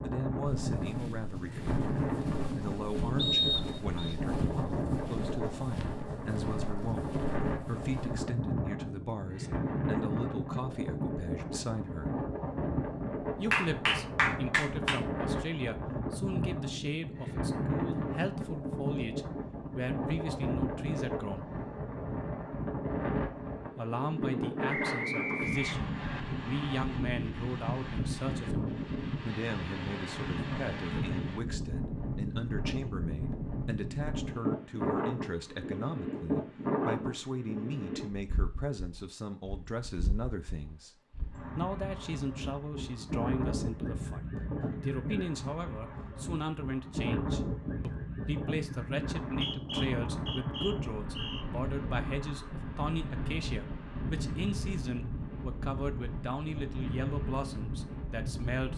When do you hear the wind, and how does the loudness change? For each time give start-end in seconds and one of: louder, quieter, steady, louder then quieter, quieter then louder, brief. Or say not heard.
0.0-58.7 steady.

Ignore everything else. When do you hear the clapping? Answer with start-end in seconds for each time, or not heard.
13.5-15.0.